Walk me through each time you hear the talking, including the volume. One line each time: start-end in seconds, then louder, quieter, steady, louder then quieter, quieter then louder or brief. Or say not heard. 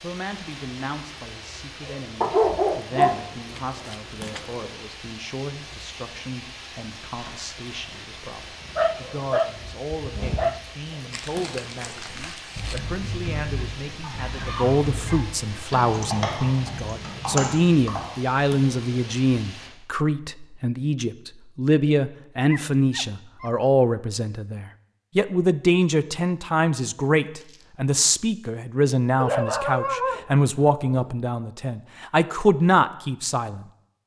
0.0-34.0 louder.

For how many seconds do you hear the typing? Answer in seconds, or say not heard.
6 s.